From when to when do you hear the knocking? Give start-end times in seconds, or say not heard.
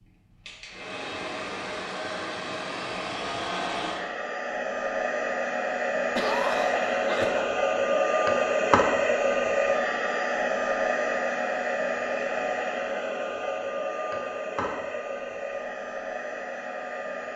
not heard.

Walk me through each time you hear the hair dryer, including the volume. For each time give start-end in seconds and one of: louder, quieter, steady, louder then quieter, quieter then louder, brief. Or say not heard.
0.0-17.3 louder then quieter.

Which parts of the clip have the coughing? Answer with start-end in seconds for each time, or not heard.
6.2-7.6.